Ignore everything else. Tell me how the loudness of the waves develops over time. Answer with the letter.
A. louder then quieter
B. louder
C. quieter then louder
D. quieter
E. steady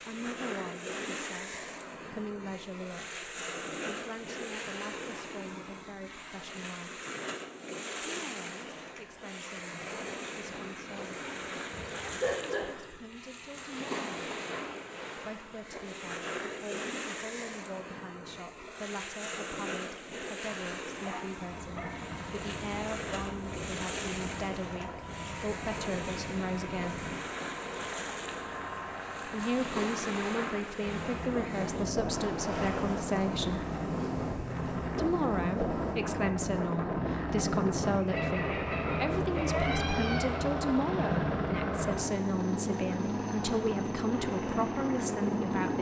E.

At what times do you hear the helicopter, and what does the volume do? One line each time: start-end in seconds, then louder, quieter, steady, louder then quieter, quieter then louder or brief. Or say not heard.
21.4-45.7 louder.